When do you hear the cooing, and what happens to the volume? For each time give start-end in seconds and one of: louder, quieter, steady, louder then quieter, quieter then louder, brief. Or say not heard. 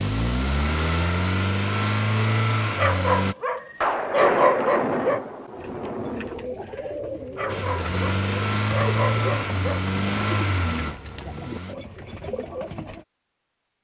5.5-13.1 steady.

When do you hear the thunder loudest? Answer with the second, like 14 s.
4 s.